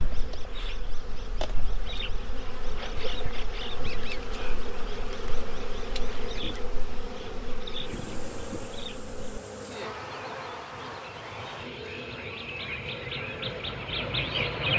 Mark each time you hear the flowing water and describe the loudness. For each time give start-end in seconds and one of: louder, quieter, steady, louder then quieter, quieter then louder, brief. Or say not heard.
not heard.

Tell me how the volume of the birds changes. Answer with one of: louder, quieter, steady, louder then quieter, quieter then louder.
louder.